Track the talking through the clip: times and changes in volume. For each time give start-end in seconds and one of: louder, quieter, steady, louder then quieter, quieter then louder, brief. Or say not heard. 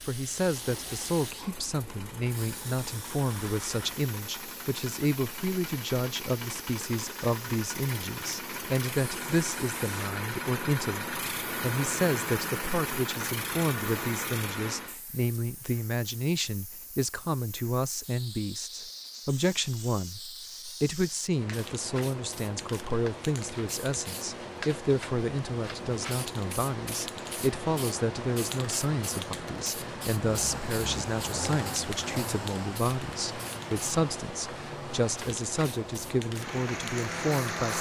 0.0-37.7 steady.